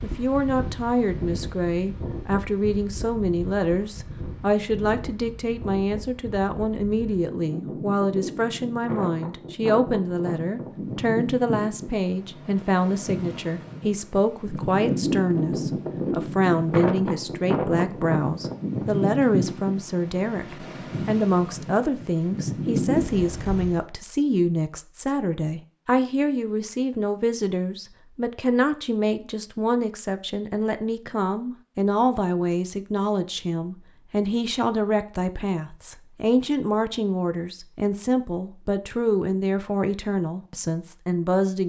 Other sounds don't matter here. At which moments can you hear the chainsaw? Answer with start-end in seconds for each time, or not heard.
not heard.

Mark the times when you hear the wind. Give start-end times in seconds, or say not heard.
0.0-23.9.